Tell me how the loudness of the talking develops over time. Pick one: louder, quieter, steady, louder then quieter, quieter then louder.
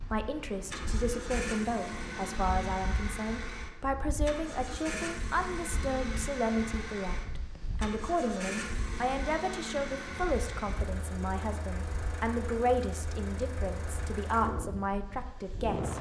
steady.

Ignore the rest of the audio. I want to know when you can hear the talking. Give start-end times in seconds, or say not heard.
0.1-15.9.